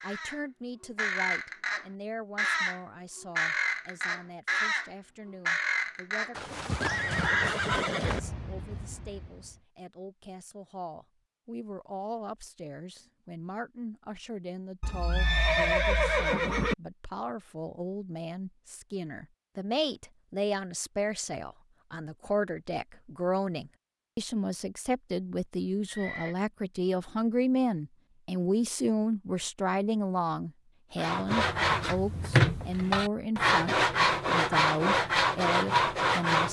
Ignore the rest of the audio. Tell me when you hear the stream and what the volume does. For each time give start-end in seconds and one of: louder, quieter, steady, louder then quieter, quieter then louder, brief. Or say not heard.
not heard.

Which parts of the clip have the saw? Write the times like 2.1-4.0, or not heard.
30.9-36.4.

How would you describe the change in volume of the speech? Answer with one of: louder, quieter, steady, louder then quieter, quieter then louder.
louder.